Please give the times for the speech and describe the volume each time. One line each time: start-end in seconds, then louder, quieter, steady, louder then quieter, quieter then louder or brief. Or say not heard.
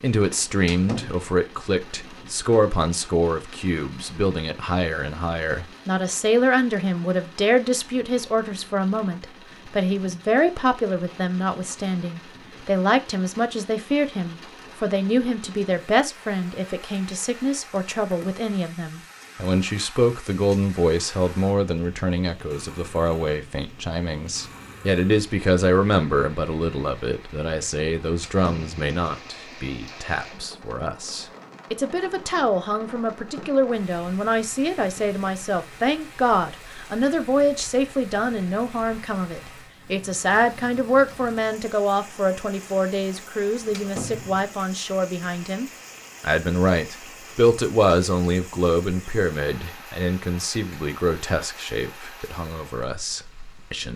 0.0-53.9 steady.